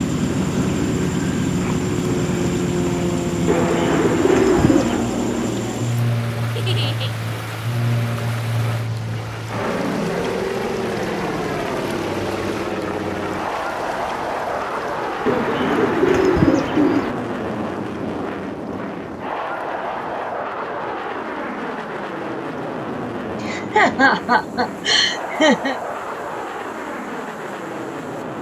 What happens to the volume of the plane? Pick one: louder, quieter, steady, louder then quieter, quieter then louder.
quieter.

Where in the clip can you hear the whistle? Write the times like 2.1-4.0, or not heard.
not heard.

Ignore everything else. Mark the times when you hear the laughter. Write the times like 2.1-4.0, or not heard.
6.5-7.1, 23.4-25.8.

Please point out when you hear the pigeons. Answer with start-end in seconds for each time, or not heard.
3.5-5.0, 15.2-17.1.